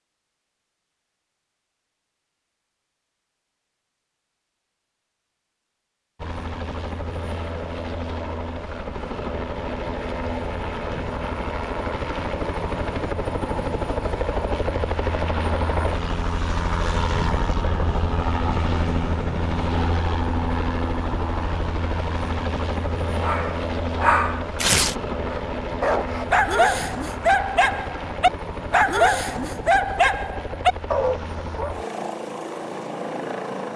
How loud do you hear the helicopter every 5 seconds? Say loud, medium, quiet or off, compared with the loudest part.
off, medium, loud, loud, loud, medium, medium.